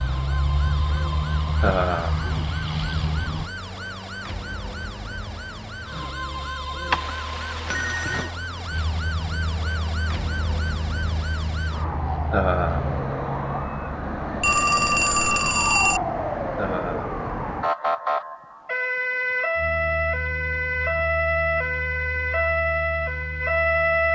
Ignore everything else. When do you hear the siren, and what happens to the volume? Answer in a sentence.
The siren can be heard from 0.0 to 24.1 s, getting louder.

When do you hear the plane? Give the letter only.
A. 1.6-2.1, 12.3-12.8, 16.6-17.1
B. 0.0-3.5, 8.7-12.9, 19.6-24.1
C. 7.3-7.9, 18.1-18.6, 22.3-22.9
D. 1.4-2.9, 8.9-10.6
B.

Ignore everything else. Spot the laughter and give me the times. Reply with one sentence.
The laughter can be heard from 1.6 to 2.1 s, from 12.3 to 12.8 s and from 16.6 to 17.1 s.